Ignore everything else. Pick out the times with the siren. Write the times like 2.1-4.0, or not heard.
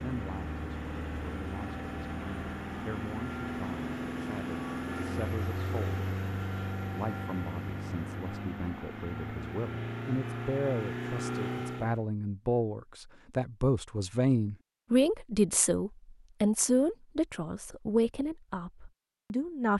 not heard.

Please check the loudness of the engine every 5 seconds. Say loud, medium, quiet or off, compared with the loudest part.
loud, loud, loud, off.